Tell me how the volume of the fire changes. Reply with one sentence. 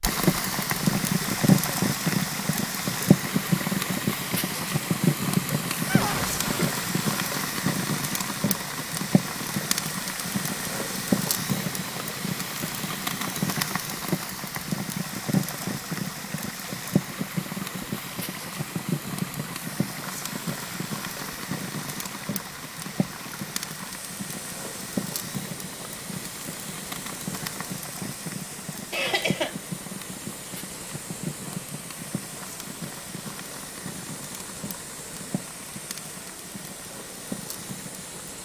The loudness of the fire goes down.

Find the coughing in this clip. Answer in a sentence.
You can hear the coughing from 5.8 to 6.8 s and from 28.9 to 29.6 s.